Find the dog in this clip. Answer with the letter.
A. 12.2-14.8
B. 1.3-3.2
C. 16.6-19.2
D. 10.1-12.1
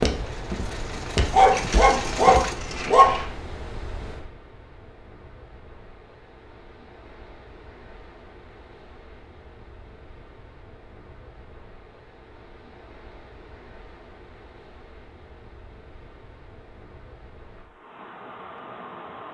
B.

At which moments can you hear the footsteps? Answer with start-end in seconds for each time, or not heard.
0.0-2.6.